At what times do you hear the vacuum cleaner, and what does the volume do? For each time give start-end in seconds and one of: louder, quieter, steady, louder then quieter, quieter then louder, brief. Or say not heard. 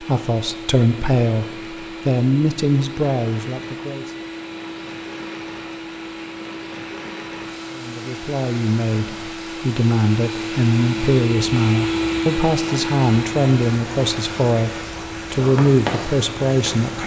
0.0-17.0 louder then quieter.